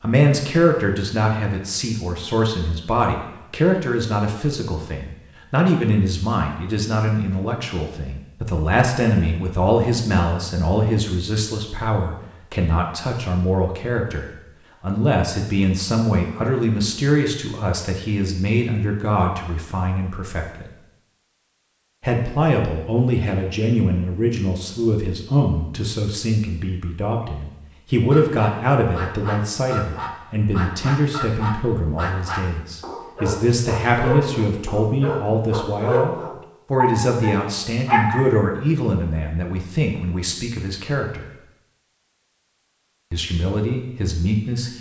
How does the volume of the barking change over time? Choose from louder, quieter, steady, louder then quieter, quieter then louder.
louder.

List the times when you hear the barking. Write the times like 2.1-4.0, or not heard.
28.1-38.4.